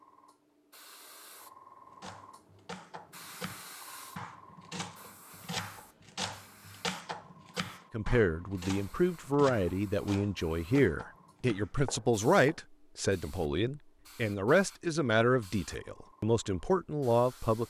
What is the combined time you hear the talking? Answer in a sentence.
You can hear the talking for 10 seconds altogether.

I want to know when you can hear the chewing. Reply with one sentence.
You can't hear the chewing here.